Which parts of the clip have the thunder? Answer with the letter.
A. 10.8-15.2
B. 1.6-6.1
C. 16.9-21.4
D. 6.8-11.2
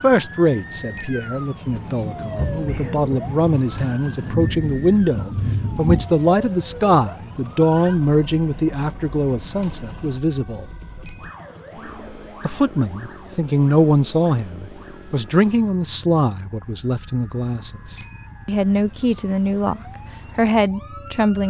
B.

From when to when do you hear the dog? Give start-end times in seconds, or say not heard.
not heard.